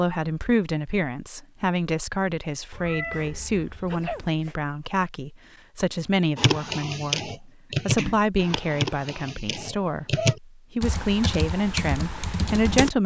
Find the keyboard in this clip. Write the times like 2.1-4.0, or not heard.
6.3-12.9.